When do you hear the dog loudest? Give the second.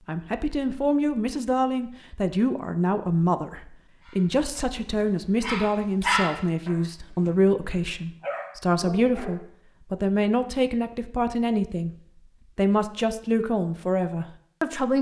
6 s.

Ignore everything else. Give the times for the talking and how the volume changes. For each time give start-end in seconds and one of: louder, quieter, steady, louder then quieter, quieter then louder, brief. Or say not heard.
0.1-11.9 steady
12.6-14.9 brief.